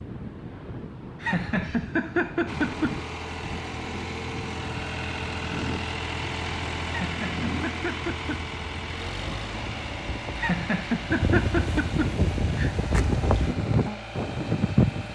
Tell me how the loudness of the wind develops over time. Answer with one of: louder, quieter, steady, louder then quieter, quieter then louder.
louder.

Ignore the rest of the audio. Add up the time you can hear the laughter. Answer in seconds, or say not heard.
6 s.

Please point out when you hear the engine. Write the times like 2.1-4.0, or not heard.
2.5-15.1.